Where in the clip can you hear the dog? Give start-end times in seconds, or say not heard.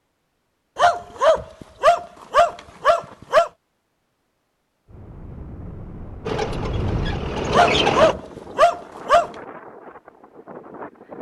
0.8-3.5, 7.5-9.3.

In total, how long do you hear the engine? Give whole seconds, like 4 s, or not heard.
2 s.